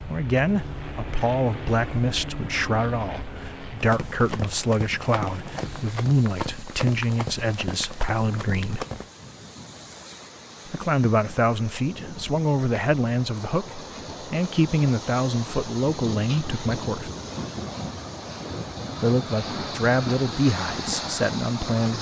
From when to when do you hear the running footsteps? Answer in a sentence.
You can hear the running footsteps from 3.8 to 9.1 s.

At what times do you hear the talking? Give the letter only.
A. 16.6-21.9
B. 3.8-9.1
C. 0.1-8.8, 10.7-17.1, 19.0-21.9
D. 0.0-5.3
C.